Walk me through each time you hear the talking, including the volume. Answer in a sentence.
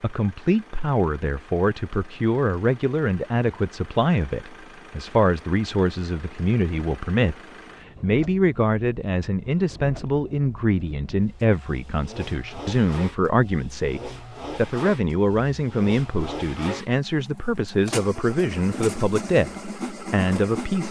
You can hear the talking from 0.0 to 7.3 s, at a steady volume; and from 8.0 to 20.8 s, at a steady volume.